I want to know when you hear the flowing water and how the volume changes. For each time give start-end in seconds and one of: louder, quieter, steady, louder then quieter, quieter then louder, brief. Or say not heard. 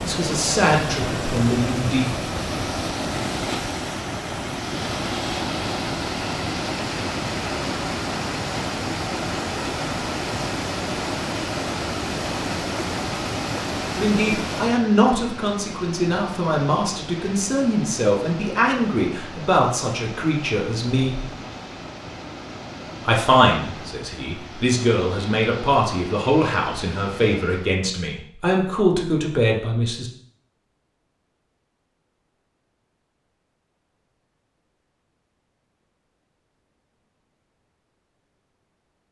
0.0-27.9 quieter.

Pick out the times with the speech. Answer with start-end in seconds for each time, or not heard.
0.0-2.1, 13.9-21.3, 23.1-30.1.